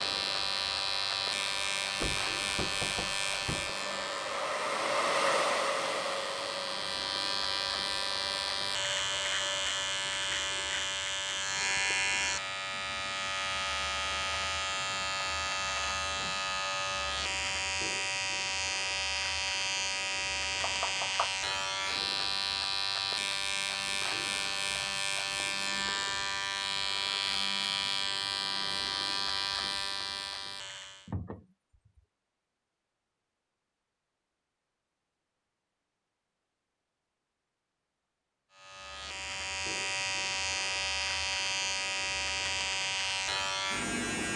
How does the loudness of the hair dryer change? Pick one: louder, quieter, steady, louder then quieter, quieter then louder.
louder then quieter.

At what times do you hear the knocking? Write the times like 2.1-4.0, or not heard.
2.0-3.7, 20.6-21.3, 31.1-32.0.